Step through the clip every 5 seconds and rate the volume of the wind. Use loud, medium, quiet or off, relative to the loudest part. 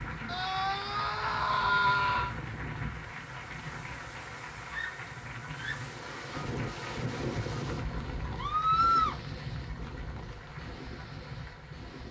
medium, loud, medium.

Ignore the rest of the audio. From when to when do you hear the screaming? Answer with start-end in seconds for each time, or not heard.
0.2-2.3, 4.7-5.8, 8.3-9.2.